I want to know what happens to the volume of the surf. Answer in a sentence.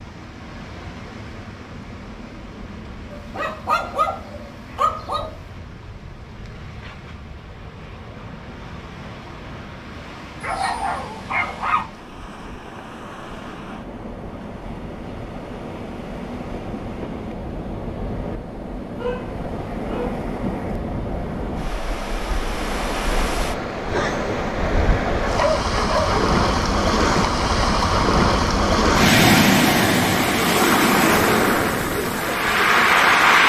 The volume of the surf goes up.